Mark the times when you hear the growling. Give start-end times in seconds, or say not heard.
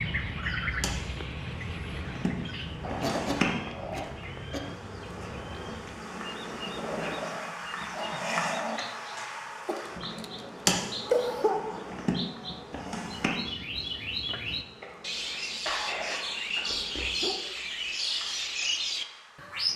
2.8-4.1, 6.8-8.8, 16.6-17.4.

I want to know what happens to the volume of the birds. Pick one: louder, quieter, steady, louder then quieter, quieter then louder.
quieter then louder.